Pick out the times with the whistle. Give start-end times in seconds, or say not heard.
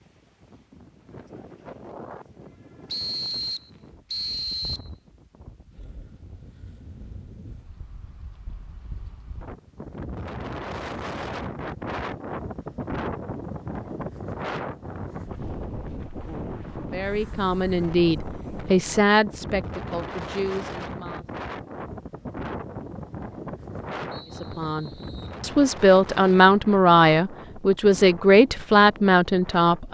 2.9-4.9, 24.1-25.4.